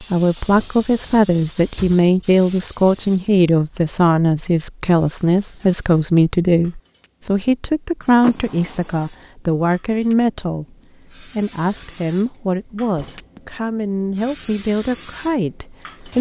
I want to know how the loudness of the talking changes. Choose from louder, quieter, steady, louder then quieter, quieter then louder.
quieter.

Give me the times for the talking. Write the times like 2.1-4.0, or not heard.
0.0-16.1.